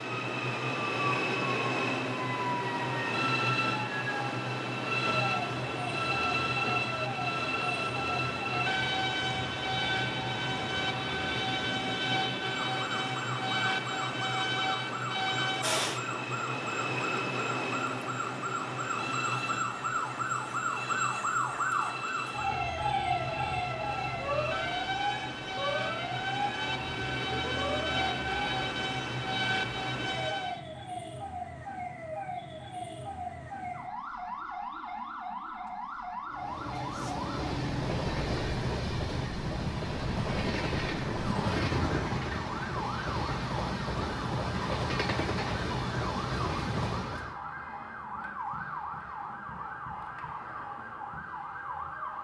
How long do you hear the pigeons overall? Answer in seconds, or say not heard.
not heard.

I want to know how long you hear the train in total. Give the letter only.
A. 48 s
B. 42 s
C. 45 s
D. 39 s
B.